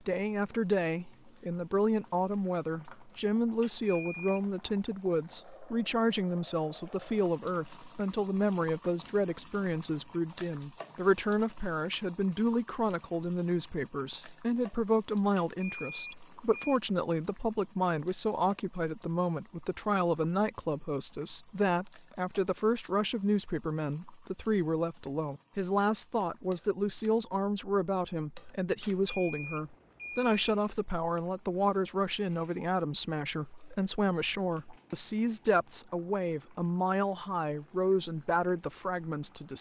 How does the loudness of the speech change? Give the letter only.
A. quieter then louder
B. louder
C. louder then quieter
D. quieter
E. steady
E.